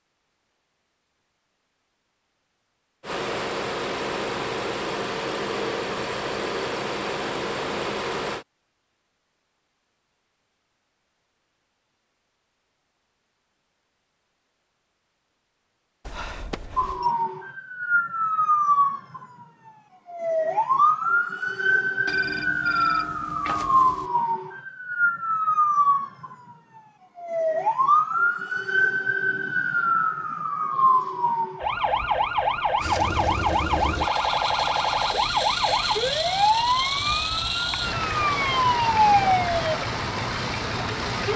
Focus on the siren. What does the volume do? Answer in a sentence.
The volume of the siren stays about the same.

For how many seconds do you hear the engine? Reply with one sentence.
You can hear the engine for 14 seconds altogether.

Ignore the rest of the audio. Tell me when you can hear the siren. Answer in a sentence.
You can hear the siren from 16.8 to 41.3 s.